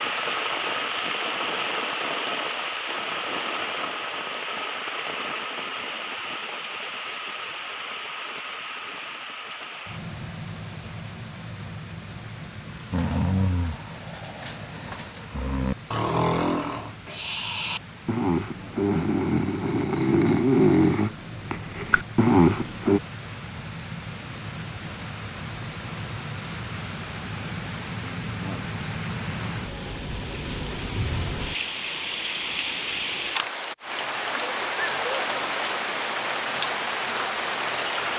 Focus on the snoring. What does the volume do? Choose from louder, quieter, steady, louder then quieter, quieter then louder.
louder.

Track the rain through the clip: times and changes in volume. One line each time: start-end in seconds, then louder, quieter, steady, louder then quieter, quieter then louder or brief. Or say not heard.
0.0-38.1 quieter then louder.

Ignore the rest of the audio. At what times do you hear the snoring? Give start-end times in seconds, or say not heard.
12.9-23.0.